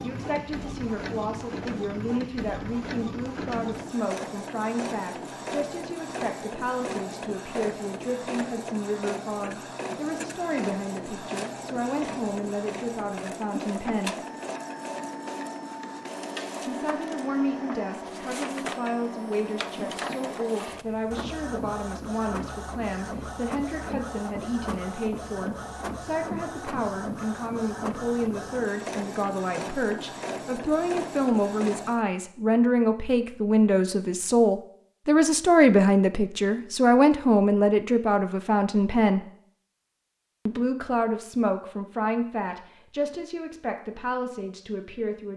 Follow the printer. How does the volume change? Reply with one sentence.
The loudness of the printer stays about the same.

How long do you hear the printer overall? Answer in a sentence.
You can hear the printer for 32 seconds altogether.